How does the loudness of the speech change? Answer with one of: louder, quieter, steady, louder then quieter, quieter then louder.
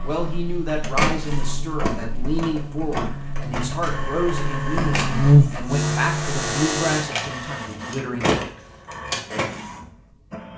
steady.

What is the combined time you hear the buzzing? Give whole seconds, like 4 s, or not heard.
7 s.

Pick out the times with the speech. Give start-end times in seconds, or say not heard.
0.0-8.2.